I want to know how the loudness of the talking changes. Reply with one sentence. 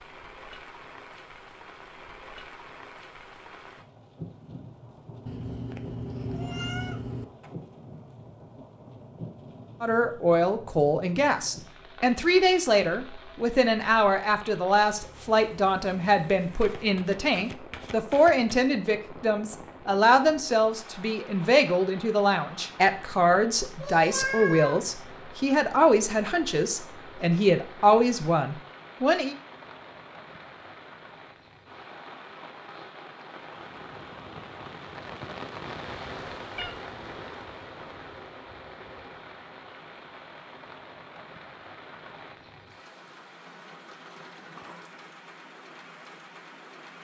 The loudness of the talking stays about the same.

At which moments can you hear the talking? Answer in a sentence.
The talking can be heard from 9.8 to 29.4 s.